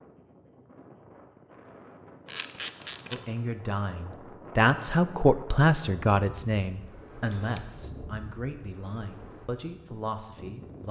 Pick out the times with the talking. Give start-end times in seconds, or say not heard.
3.1-10.8.